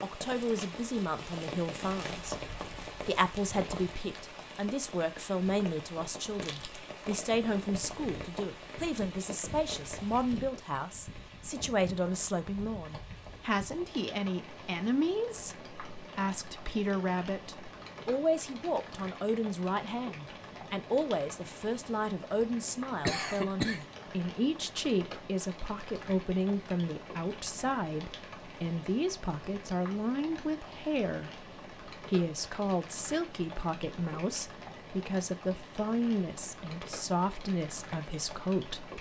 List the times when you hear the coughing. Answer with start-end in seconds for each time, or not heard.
23.0-23.9.